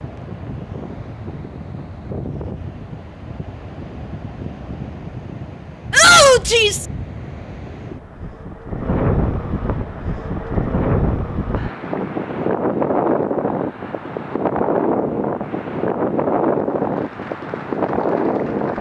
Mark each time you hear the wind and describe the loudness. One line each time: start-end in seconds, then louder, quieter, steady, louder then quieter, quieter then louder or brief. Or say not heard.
0.0-18.7 louder.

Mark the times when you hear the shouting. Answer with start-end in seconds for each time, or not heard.
5.9-6.8.